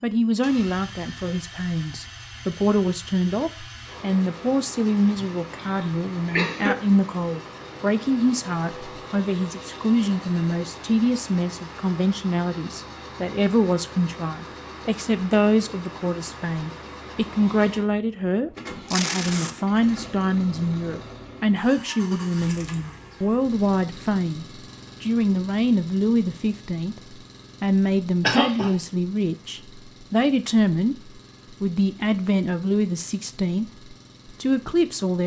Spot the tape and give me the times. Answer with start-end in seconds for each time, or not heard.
18.9-19.6.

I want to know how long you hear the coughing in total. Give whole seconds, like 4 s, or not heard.
2 s.